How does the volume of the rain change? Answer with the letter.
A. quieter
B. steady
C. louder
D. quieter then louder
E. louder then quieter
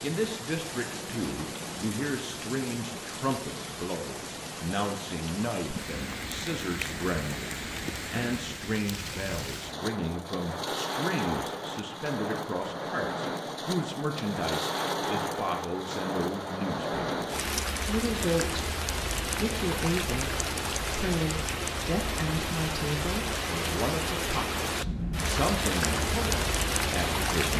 C.